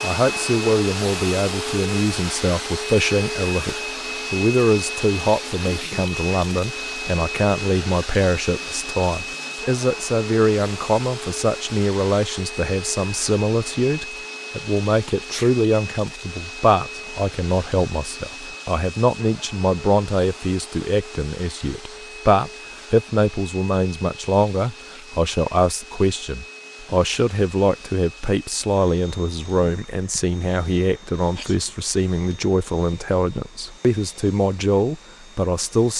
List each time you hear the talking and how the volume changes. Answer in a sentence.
The talking can be heard from 0.0 to 35.9 s, at a steady volume.